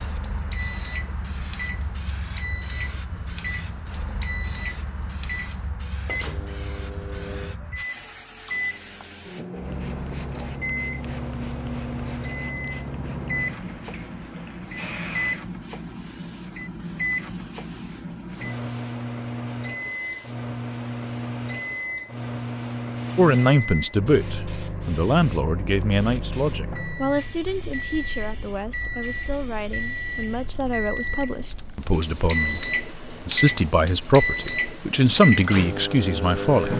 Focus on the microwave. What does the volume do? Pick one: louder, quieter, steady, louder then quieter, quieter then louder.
louder.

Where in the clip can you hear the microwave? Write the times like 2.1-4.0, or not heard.
0.1-36.7.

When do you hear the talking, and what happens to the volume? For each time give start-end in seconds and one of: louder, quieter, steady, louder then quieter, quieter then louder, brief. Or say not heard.
23.1-36.7 quieter then louder.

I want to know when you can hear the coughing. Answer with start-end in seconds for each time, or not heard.
not heard.